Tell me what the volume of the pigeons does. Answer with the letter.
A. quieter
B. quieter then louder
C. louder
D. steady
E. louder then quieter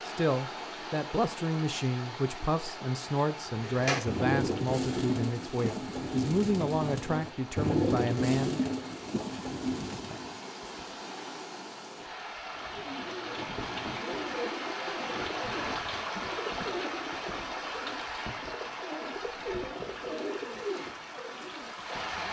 A.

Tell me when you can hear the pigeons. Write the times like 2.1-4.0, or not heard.
3.5-10.4, 12.7-22.2.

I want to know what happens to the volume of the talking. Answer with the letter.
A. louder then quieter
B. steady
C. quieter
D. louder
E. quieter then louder
B.